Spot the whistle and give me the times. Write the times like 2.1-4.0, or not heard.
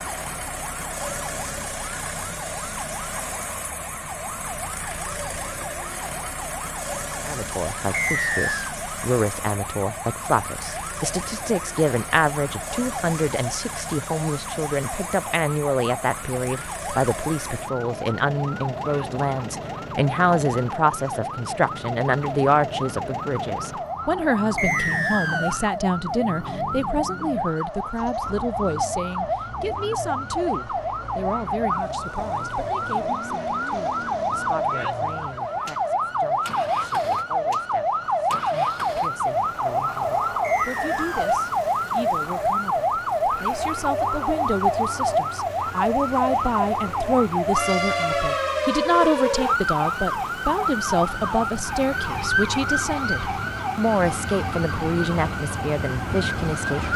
7.9-8.8, 24.6-25.7, 40.4-41.4.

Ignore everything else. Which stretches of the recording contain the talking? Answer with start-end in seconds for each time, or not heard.
7.2-56.9.